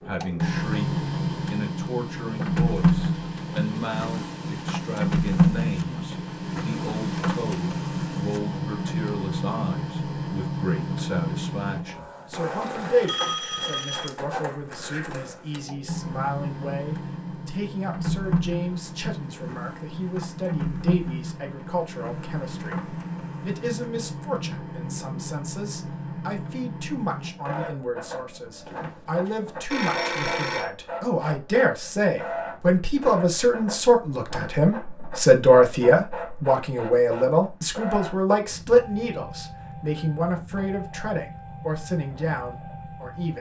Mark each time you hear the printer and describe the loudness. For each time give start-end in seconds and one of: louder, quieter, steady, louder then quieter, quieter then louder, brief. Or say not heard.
0.0-43.3 quieter.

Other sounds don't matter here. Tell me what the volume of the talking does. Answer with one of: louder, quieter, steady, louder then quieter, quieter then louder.
louder.